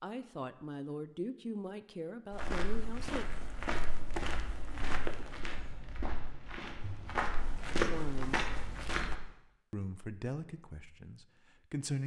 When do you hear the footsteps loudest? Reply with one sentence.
The loudest moment of the footsteps is at 8 seconds.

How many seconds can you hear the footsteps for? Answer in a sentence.
You can hear the footsteps for 7 seconds altogether.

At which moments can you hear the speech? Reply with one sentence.
The speech can be heard from 0.0 to 3.2 s, from 7.8 to 8.4 s and from 9.7 to 12.0 s.